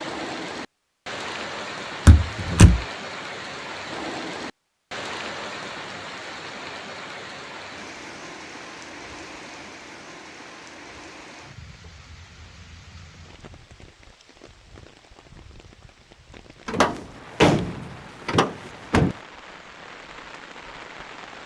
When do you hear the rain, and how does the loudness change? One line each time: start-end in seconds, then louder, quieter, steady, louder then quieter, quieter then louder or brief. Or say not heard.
0.0-21.4 quieter then louder.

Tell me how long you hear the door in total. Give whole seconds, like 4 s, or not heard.
3 s.